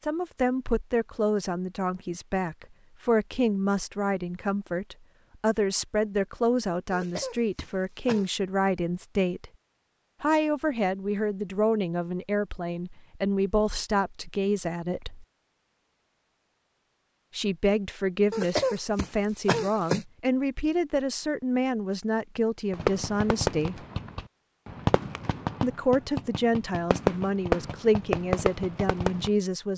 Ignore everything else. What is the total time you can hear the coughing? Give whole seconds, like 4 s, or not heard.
3 s.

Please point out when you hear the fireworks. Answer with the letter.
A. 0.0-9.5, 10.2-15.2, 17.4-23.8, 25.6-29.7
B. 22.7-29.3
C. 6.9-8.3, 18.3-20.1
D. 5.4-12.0
B.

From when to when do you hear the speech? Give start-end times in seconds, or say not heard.
0.0-9.5, 10.2-15.2, 17.4-23.8, 25.6-29.7.